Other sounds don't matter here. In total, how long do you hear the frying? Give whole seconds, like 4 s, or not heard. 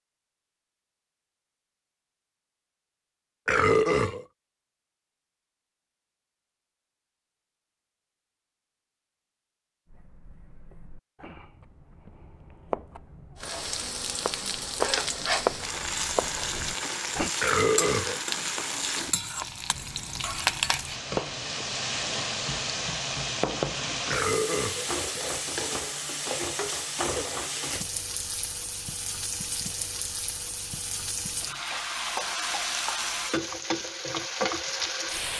22 s.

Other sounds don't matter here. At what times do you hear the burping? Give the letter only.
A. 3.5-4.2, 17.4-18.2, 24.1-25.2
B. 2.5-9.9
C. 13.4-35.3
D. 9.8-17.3
A.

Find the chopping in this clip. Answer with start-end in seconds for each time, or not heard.
9.8-17.3.